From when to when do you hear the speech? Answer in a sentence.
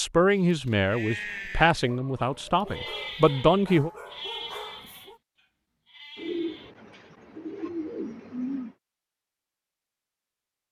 The speech can be heard from 0.0 to 3.9 s.